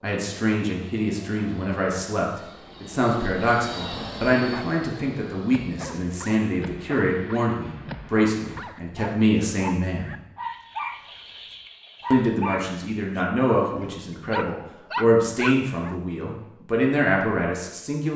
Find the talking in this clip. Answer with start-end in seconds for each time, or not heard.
0.0-10.2, 12.1-18.1.